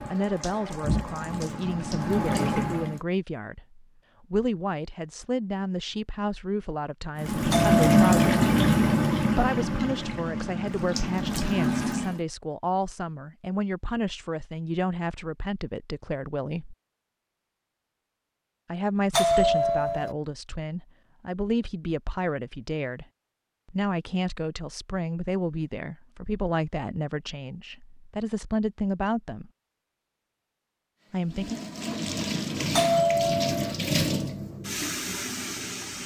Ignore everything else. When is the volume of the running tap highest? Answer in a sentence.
The loudest moment of the running tap is at 8 seconds.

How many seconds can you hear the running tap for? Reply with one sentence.
You can hear the running tap for 13 seconds altogether.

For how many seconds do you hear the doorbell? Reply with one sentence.
You can hear the doorbell for 3 seconds altogether.